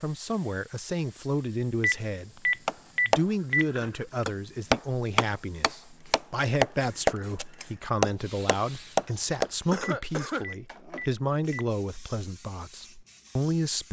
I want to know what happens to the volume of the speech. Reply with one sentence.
The volume of the speech stays about the same.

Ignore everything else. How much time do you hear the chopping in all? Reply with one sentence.
You can hear the chopping for 7 seconds altogether.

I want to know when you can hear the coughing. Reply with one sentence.
You can hear the coughing from 9.1 to 10.4 s.